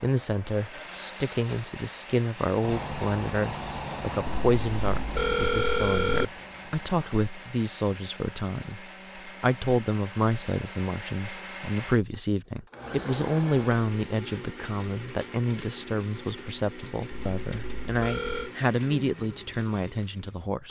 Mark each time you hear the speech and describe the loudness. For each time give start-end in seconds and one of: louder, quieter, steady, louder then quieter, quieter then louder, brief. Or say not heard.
0.0-20.6 steady.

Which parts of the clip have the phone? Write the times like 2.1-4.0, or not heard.
4.2-6.2, 17.1-18.5.